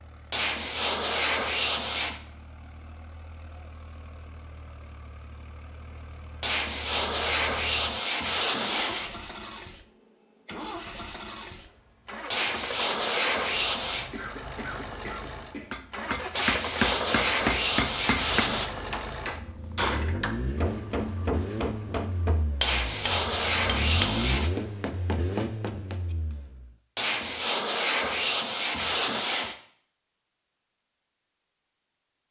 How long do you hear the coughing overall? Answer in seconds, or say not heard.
2 s.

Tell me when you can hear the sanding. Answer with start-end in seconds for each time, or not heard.
0.3-2.2, 6.4-9.1, 12.3-14.1, 16.4-18.7, 22.6-24.5, 26.9-29.6.